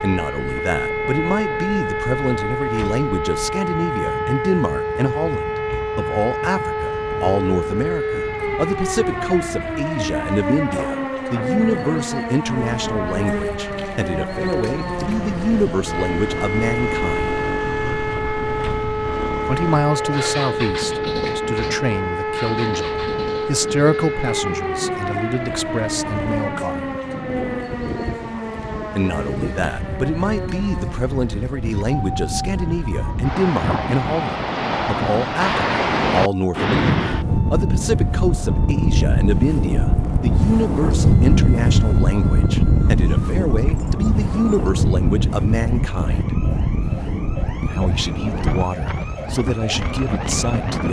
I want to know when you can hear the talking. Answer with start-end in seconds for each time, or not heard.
0.0-17.4, 19.4-26.9, 28.9-46.3, 47.6-50.8.